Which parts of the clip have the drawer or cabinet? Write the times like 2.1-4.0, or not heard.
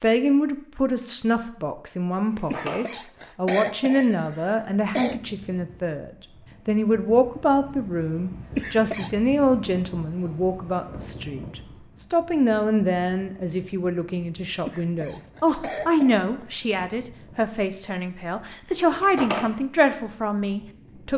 2.2-2.9, 18.8-19.5.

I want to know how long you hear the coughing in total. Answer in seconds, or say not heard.
5 s.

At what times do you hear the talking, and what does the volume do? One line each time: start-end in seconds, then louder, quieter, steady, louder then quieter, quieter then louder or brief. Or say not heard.
0.0-21.1 steady.